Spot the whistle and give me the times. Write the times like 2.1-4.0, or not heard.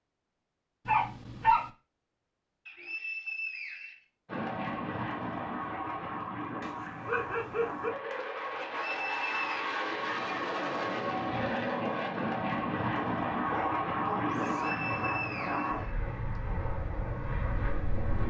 2.6-4.0, 8.7-9.6, 14.4-16.4.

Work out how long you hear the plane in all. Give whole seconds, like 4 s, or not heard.
14 s.